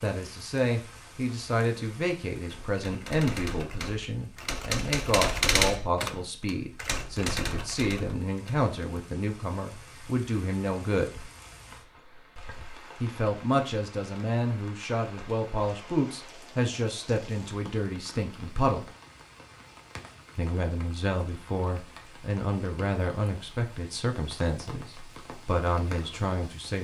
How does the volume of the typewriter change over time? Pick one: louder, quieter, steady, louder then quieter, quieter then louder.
louder then quieter.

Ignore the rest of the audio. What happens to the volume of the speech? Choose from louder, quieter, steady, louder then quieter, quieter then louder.
steady.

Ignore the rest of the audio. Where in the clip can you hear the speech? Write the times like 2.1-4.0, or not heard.
0.0-11.2, 13.0-18.9, 20.4-26.8.